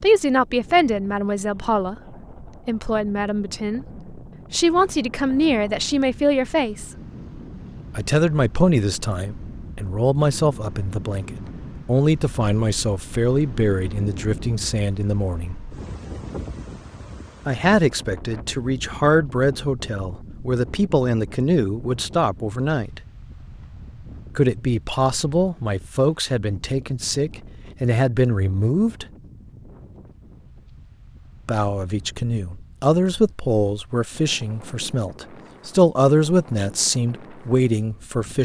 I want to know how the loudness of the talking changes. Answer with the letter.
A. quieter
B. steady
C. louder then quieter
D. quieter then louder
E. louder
B.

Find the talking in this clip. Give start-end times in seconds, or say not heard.
0.0-6.9, 8.0-15.6, 17.4-23.0, 24.4-29.1, 31.4-38.3.